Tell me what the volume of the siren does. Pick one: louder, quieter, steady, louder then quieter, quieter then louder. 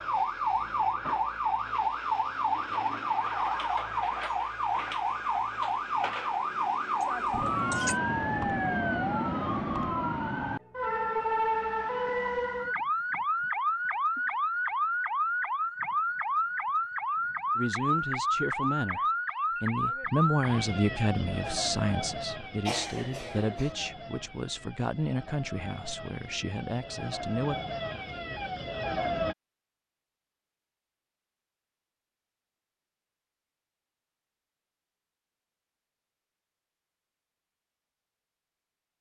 quieter.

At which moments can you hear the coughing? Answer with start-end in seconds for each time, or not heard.
7.0-8.0, 22.6-23.8.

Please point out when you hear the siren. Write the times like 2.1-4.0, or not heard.
0.0-29.4.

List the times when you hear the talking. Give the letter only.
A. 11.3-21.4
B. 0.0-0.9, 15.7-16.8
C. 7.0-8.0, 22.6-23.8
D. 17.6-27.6
D.